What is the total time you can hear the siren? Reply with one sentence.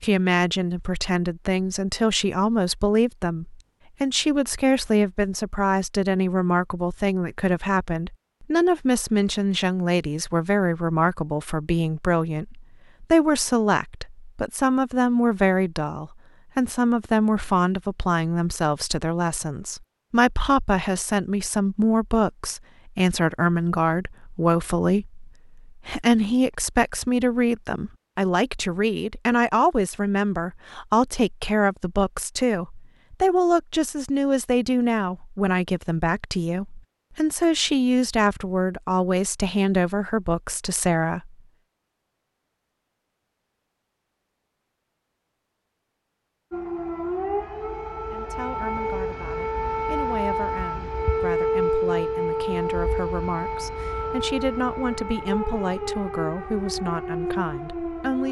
You can hear the siren for 12 seconds altogether.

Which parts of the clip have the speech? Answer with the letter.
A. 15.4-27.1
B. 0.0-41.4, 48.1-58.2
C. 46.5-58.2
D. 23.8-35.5
B.